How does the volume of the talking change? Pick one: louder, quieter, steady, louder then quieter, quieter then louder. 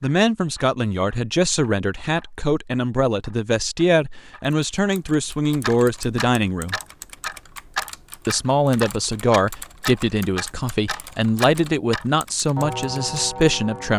steady.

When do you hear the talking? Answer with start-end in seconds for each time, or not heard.
0.0-6.8, 8.2-13.9.